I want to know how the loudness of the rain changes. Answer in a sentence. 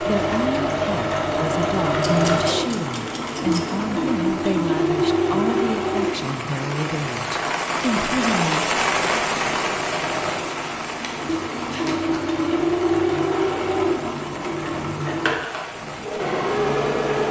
The volume of the rain goes up, then down.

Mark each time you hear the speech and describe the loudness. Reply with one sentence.
You can hear the speech from 0.0 to 8.7 s, at a steady volume.